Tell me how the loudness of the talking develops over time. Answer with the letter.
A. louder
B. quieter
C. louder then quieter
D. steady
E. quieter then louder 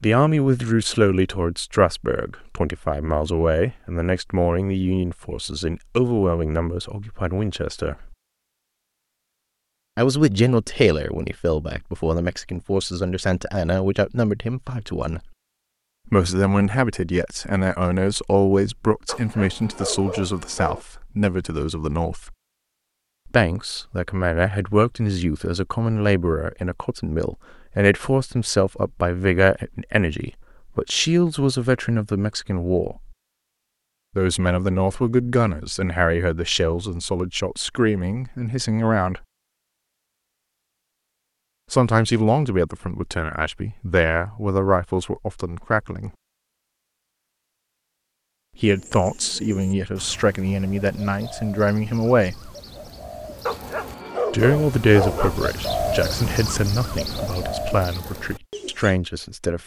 D.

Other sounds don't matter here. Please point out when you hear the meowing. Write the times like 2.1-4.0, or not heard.
not heard.